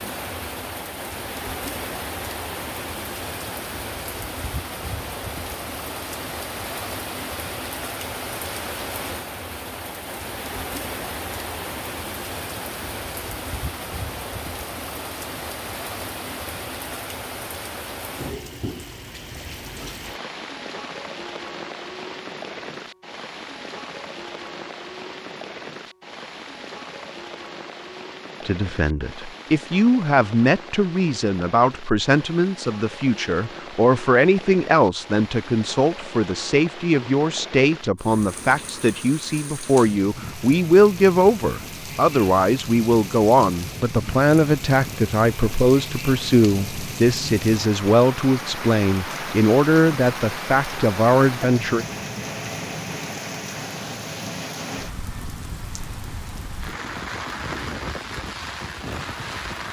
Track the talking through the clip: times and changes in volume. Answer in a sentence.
You can hear the talking from 28.4 to 51.9 s, at a steady volume.